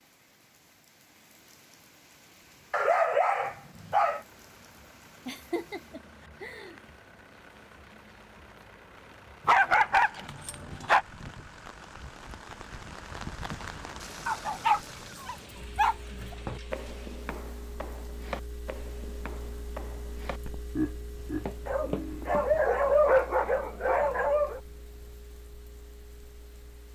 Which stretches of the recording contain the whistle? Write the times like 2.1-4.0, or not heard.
not heard.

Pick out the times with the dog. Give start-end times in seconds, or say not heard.
2.7-4.2, 9.4-11.1, 14.2-16.4, 21.6-24.6.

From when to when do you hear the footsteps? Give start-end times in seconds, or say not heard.
16.2-22.6.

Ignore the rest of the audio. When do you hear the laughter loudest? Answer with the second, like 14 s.
21 s.